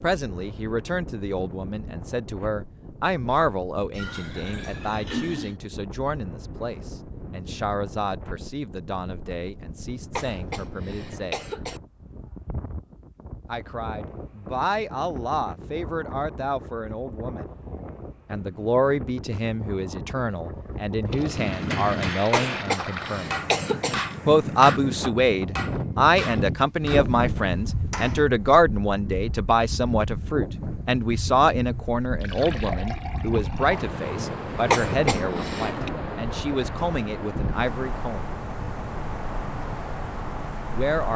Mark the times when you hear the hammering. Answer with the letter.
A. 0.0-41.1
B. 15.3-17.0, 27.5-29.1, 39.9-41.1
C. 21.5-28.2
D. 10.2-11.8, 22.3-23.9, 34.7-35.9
C.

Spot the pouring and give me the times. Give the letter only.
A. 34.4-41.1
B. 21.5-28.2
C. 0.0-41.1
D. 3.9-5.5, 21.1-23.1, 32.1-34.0
D.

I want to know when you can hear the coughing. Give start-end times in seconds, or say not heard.
10.2-11.8, 22.3-23.9, 34.7-35.9.